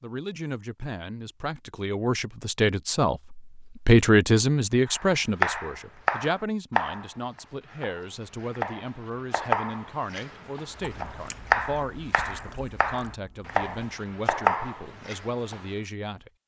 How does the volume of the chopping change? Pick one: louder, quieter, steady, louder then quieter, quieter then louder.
quieter then louder.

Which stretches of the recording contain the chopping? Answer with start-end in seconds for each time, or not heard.
4.8-15.7.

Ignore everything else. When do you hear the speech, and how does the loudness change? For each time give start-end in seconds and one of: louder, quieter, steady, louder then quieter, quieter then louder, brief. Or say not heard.
0.0-16.3 louder then quieter.